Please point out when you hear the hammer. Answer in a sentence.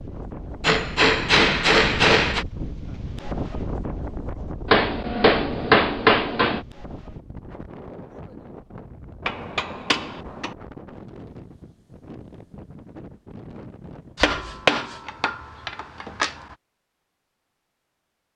The hammer can be heard from 0.6 to 2.5 s, from 4.7 to 6.7 s, from 9.2 to 10.6 s and from 14.2 to 16.4 s.